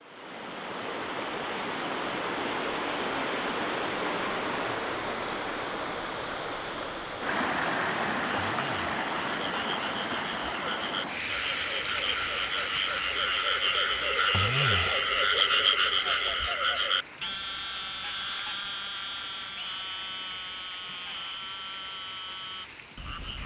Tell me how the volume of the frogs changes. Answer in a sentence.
The loudness of the frogs goes up, then down.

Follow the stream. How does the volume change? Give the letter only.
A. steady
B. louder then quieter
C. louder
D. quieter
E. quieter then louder
D.